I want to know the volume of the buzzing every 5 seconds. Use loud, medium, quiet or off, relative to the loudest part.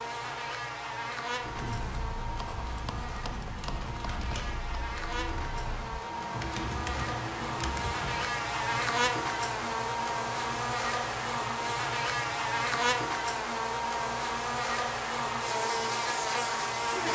medium, loud, loud, loud.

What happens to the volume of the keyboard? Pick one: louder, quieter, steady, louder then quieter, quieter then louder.
louder.